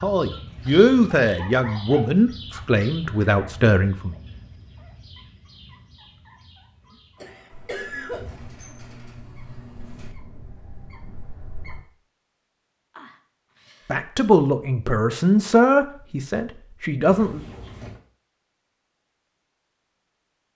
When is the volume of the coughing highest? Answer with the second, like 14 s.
8 s.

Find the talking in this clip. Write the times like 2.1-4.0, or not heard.
0.0-4.2, 13.8-17.4.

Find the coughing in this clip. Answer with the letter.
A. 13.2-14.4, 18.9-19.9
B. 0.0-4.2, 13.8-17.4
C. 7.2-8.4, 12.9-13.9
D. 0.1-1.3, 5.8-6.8
C.